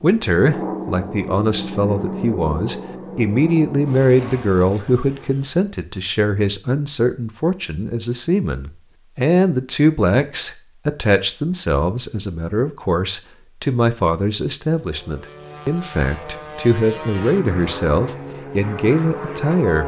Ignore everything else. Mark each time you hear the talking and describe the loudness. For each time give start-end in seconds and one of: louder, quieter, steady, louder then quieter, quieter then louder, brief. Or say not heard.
0.0-19.8 steady.